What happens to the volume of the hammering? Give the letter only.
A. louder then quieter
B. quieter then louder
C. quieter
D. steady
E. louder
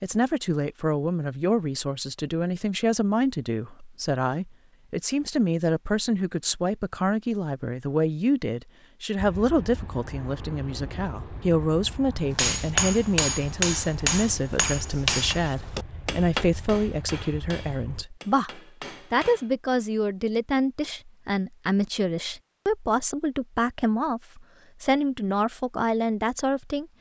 C.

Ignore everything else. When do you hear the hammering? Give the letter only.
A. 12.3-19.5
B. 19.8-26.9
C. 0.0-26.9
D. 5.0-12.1
A.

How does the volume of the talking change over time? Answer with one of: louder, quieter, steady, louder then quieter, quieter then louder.
steady.